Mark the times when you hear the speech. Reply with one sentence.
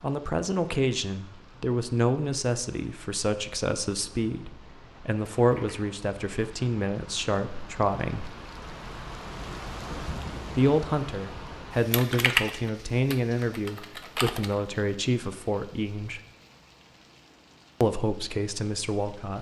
The speech can be heard from 0.0 to 8.3 s, from 10.6 to 16.2 s and from 17.8 to 19.3 s.